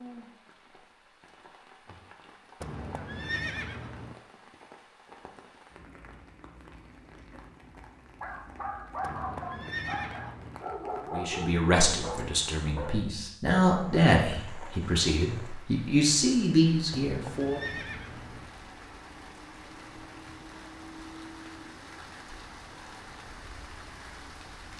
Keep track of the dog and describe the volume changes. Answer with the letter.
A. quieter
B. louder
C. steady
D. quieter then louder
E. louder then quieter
C.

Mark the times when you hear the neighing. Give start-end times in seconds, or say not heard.
2.6-4.2, 9.0-10.6, 16.9-18.4.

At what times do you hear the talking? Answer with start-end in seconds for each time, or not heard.
11.1-17.6.